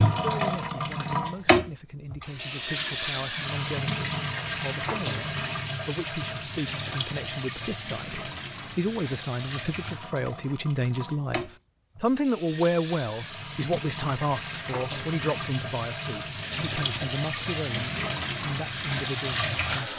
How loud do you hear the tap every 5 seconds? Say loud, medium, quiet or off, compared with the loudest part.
loud, medium, medium, loud.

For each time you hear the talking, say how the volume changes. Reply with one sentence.
The talking can be heard from 0.1 to 19.9 s, getting louder then quieter.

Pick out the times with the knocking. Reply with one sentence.
The knocking can't be heard in this clip.